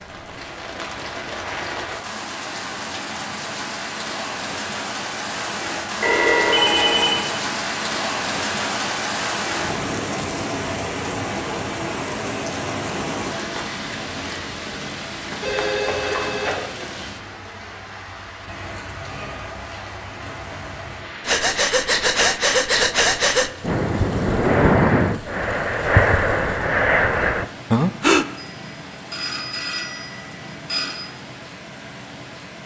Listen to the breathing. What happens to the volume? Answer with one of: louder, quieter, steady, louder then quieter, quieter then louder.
steady.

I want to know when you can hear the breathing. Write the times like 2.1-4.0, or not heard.
21.2-28.2.